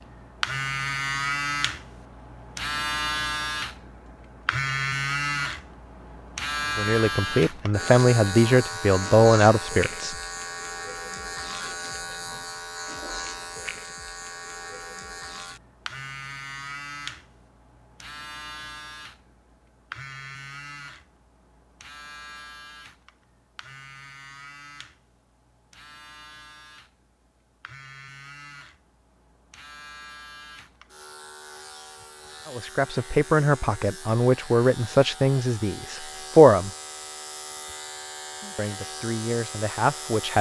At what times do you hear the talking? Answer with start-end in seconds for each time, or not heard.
6.8-10.2, 32.5-36.7, 38.5-40.3.